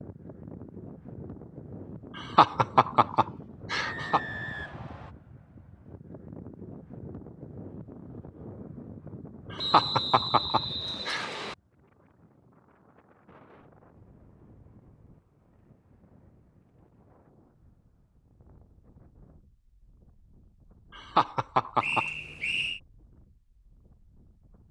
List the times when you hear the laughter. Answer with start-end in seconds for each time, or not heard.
2.1-4.2, 9.5-11.4, 20.9-22.1.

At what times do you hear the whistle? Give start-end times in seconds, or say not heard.
3.8-5.1, 9.6-11.6, 21.8-22.8.